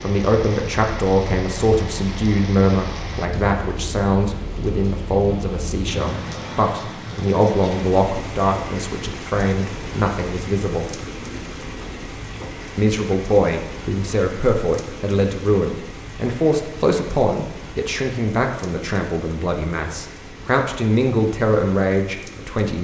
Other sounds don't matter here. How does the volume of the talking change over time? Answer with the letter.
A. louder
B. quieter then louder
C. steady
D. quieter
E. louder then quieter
C.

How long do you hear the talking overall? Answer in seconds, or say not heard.
21 s.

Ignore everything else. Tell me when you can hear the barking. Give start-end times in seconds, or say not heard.
not heard.